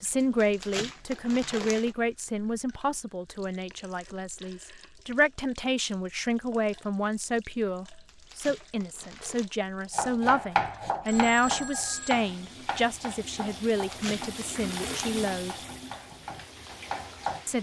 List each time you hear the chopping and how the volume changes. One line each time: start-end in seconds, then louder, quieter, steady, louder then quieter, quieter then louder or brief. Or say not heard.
9.9-17.4 quieter then louder.